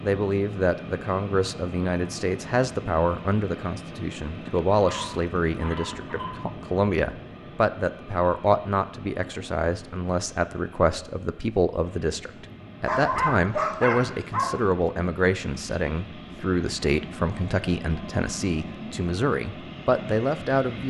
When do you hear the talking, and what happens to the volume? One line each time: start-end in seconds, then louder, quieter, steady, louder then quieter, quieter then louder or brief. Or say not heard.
0.0-20.8 steady.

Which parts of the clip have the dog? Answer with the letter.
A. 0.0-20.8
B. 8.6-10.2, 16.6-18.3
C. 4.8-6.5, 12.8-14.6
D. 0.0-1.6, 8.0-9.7
C.